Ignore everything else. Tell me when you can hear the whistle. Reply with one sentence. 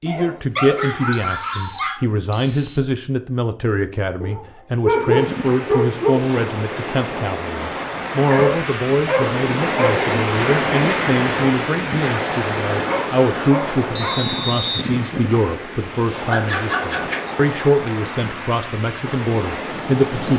The whistle can be heard from 1.1 to 2.8 s and from 13.9 to 14.8 s.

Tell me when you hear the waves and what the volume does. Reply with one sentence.
You can hear the waves from 5.0 to 20.3 s, getting louder then quieter.